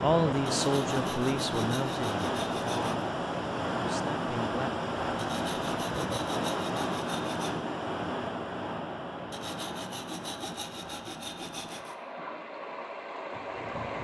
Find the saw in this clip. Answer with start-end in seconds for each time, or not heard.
0.6-3.0, 5.2-7.5, 9.3-11.9.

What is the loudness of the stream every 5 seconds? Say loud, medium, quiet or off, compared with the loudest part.
loud, loud, medium.